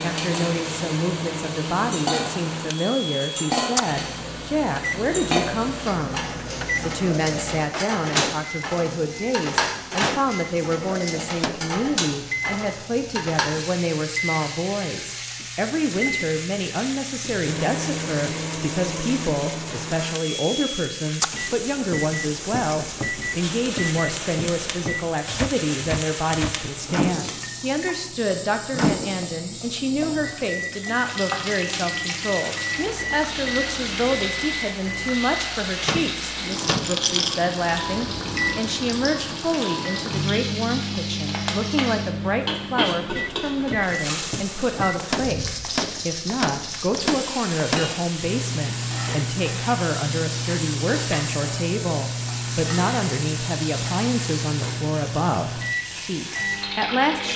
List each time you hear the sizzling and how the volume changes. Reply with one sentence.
The sizzling can be heard from 0.0 to 57.3 s, at a steady volume.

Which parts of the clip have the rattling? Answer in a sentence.
You can hear the rattling from 36.5 to 37.4 s.